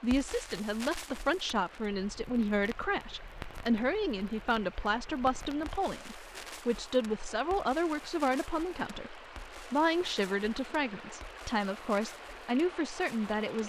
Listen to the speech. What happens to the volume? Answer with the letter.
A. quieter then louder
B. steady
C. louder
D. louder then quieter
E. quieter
B.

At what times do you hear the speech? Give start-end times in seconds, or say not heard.
0.0-13.6.